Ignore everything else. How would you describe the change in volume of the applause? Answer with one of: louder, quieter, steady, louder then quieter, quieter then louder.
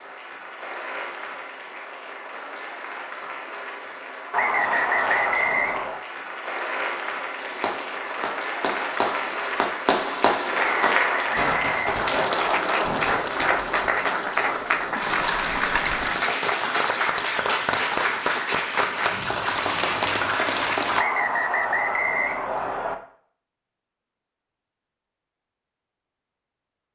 louder.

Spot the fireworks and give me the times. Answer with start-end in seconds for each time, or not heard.
7.3-13.8.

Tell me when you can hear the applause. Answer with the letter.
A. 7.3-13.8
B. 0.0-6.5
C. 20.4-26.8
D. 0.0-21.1
D.